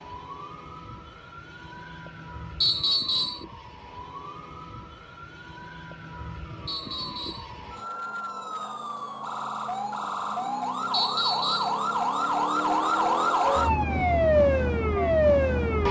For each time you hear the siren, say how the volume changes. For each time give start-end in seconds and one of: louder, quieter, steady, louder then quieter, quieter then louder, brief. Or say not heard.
0.0-15.8 louder.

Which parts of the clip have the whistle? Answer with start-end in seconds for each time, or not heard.
2.6-3.5, 6.7-7.5, 10.9-11.8.